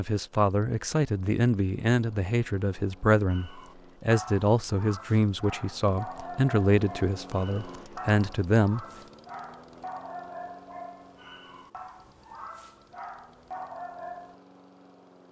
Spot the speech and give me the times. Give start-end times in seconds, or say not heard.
0.0-8.8.